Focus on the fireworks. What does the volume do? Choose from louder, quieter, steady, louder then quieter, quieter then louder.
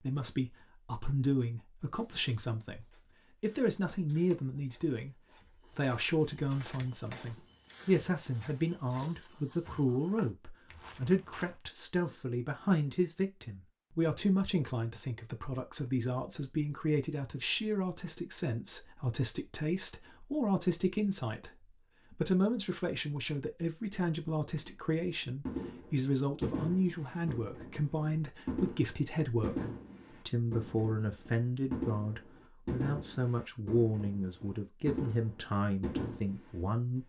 steady.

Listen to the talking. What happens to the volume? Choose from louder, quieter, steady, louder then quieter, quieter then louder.
steady.